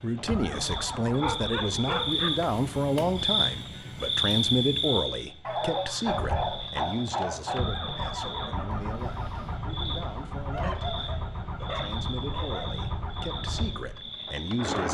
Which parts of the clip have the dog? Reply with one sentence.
You can hear the dog from 1.1 to 2.3 s, from 5.4 to 7.7 s and from 10.5 to 12.7 s.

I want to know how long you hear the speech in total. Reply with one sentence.
You can hear the speech for 15 seconds altogether.